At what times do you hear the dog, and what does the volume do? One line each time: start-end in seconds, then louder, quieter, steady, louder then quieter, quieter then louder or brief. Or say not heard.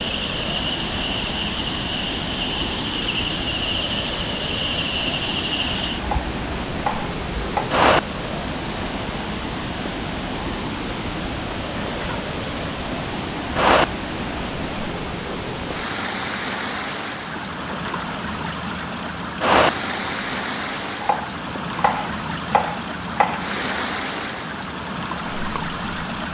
not heard.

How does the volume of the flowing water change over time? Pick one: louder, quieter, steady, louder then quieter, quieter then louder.
steady.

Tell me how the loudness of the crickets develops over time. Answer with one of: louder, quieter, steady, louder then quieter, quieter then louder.
quieter.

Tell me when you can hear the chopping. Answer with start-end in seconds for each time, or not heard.
5.9-7.7, 21.0-23.4.